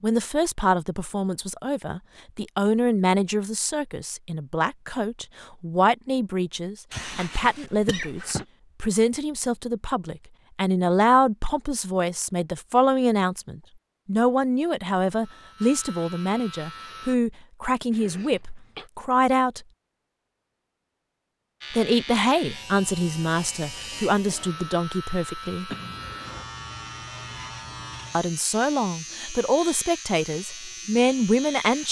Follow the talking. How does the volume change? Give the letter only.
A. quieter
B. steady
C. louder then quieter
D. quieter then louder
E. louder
B.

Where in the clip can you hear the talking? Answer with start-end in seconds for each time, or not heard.
0.0-19.6, 21.7-25.7, 28.1-31.8.